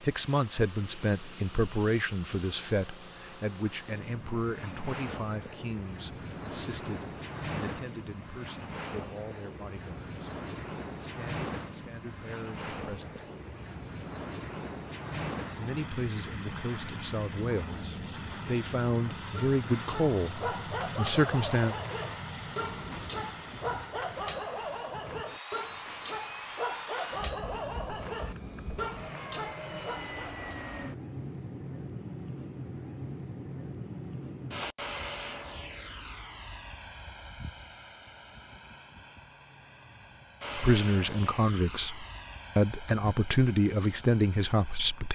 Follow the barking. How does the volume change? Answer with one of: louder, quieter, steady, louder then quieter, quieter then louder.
steady.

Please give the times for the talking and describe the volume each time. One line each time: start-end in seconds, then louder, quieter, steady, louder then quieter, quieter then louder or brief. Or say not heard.
0.0-13.2 quieter
15.6-21.8 louder
40.5-45.1 quieter then louder.